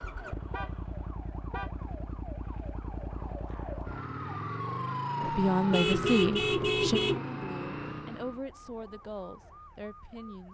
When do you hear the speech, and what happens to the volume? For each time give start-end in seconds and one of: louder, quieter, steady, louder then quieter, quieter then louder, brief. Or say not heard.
5.3-10.4 quieter.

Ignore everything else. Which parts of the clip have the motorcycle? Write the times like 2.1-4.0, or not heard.
0.0-8.4.